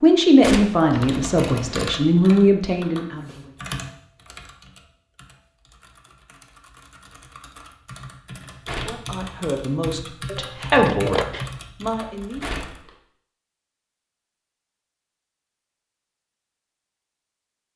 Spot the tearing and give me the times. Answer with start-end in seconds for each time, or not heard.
0.4-0.9, 8.7-9.2, 12.4-12.9.